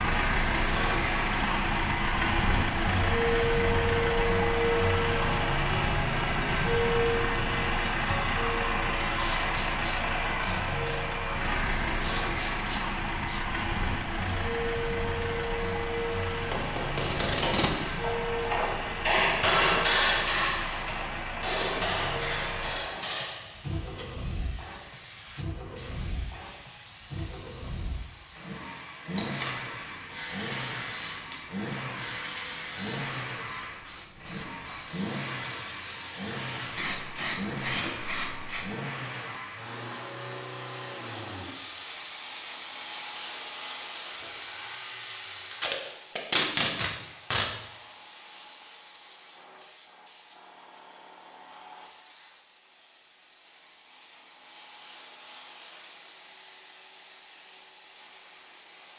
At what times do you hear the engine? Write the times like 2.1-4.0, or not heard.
0.0-45.8.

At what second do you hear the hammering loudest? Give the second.
20 s.